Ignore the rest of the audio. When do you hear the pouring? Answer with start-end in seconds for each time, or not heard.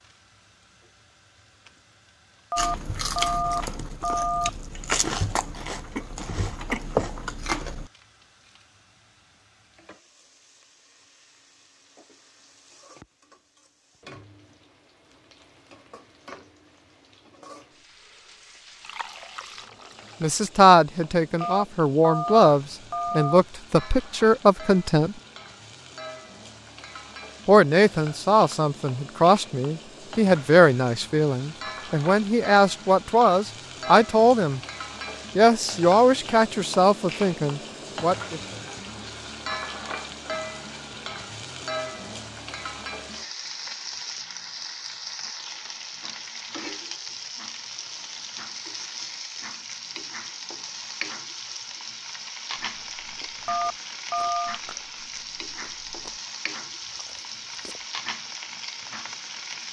18.8-20.6.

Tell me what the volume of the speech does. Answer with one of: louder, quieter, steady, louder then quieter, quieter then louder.
steady.